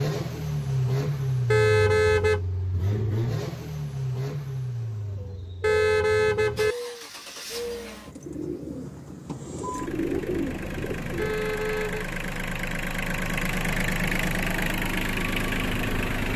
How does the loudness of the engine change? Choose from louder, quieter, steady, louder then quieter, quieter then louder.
quieter then louder.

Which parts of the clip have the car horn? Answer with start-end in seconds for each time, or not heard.
1.5-2.4, 5.6-6.8, 11.2-12.1.